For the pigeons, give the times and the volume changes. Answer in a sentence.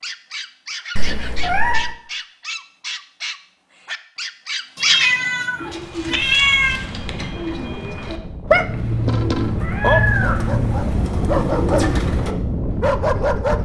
You can hear the pigeons from 5.5 to 12.8 s, getting louder.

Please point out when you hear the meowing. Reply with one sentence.
The meowing can be heard from 0.9 to 1.9 s, from 4.8 to 6.8 s and from 9.6 to 10.5 s.